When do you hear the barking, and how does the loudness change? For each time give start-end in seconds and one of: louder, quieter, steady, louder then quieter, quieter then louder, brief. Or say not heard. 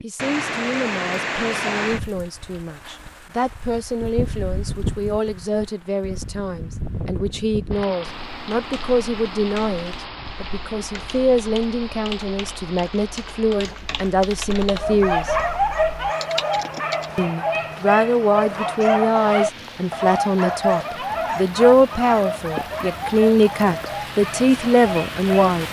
14.8-25.5 quieter.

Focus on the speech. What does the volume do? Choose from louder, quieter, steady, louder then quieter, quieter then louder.
louder.